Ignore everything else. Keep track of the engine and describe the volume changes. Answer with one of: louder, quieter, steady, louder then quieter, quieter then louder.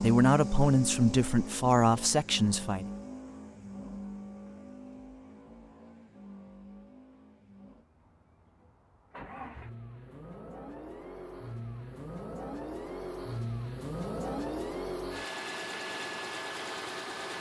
quieter then louder.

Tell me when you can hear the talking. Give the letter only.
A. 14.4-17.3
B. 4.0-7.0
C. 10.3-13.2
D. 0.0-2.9
D.